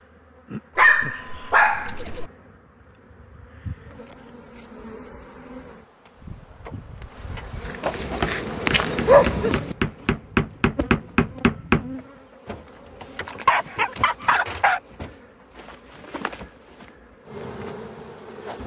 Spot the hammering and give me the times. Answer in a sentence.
You can hear the hammering from 8.2 to 11.9 s.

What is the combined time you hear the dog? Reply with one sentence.
You can hear the dog for 5 seconds altogether.